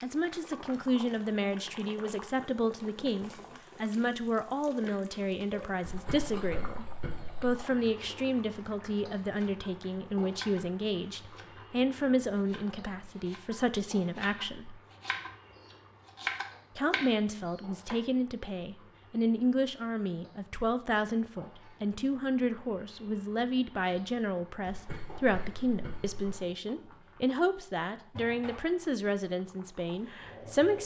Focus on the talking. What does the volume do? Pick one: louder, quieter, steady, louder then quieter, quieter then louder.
steady.